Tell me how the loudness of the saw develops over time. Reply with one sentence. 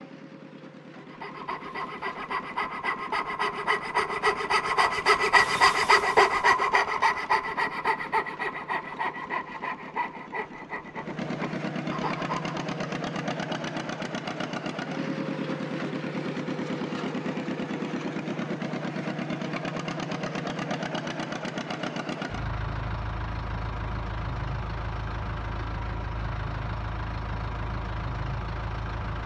The loudness of the saw goes up, then down.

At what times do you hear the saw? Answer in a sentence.
The saw can be heard from 0.9 to 12.7 s.